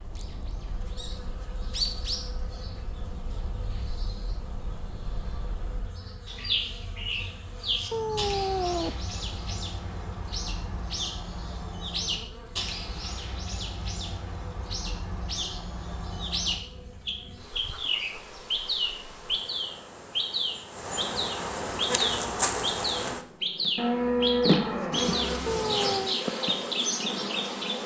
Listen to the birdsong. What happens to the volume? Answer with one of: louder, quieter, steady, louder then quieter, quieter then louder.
louder.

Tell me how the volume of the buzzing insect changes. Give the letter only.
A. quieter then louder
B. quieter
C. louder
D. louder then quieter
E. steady
C.